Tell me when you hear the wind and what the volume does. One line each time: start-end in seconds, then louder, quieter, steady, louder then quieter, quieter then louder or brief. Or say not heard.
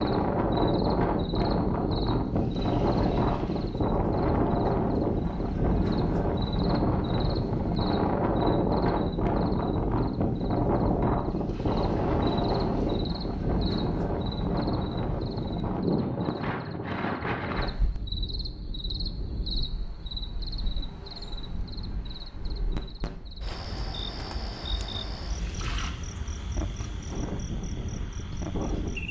0.0-29.0 quieter.